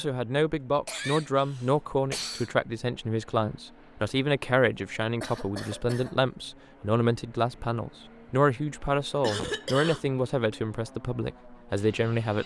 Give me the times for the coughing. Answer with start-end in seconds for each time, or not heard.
0.8-2.5, 4.8-6.2, 9.2-10.0.